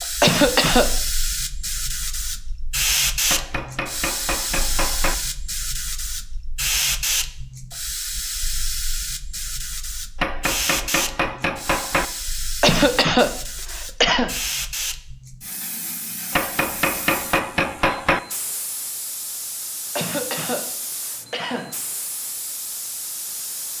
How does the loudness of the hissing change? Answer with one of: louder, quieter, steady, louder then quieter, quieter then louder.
quieter.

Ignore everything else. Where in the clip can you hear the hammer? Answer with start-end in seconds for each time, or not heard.
3.3-5.2, 10.2-12.1, 16.3-18.2.